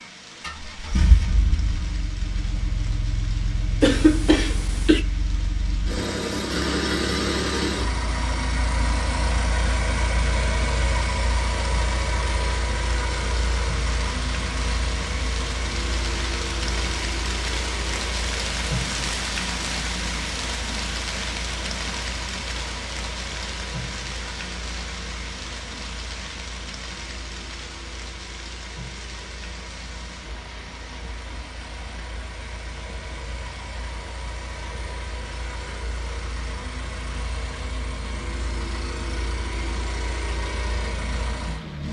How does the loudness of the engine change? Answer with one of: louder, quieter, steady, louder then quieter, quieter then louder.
quieter then louder.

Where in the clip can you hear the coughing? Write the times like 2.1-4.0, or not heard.
3.8-5.0.